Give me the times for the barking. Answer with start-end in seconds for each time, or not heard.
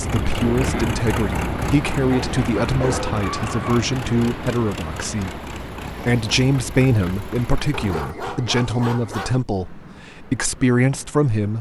2.1-3.9, 7.7-9.4.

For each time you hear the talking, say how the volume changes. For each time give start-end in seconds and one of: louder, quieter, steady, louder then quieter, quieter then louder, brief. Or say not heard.
0.0-11.5 steady.